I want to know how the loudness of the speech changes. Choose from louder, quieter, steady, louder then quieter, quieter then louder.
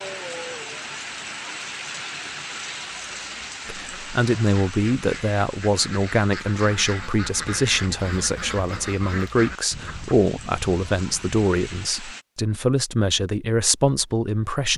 steady.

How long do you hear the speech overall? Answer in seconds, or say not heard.
11 s.